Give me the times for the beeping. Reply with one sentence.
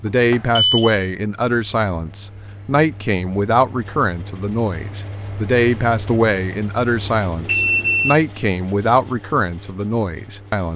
You can hear the beeping from 0.1 to 1.1 s and from 7.0 to 8.2 s.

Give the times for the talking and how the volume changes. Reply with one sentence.
You can hear the talking from 0.0 to 10.7 s, at a steady volume.